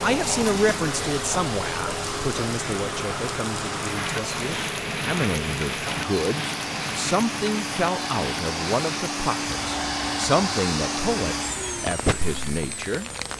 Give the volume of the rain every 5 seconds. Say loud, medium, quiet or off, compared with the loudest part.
loud, loud, medium.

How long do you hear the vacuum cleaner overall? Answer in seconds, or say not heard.
13 s.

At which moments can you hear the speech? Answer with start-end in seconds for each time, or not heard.
0.0-13.1.